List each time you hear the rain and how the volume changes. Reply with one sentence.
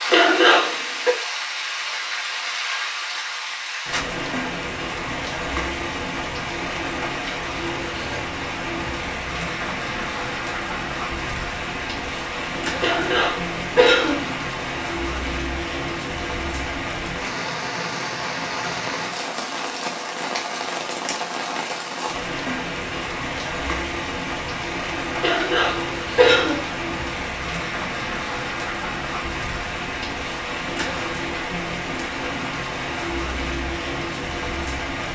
The rain can be heard from 0.0 to 35.1 s, at a steady volume.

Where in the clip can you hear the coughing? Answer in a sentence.
The coughing can be heard from 0.1 to 1.1 s, from 12.8 to 14.3 s and from 25.2 to 26.8 s.